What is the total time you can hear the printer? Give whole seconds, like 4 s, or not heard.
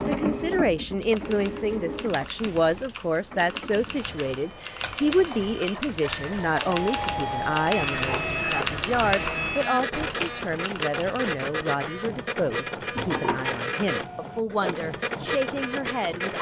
16 s.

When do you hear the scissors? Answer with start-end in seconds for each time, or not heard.
4.2-5.7, 12.9-13.6.